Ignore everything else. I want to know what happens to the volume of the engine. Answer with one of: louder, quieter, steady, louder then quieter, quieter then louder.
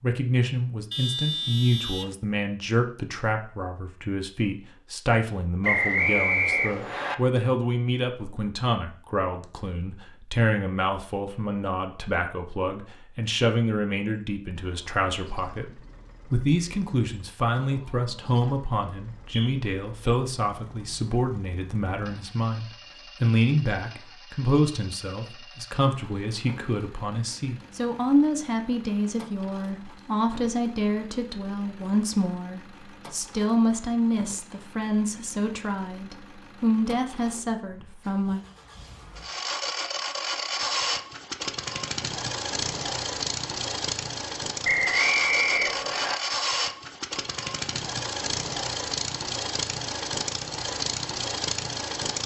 louder.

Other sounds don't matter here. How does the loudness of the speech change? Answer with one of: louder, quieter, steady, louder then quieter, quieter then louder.
steady.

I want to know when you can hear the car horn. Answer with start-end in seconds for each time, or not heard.
0.9-2.1.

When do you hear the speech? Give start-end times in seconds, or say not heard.
0.0-38.5.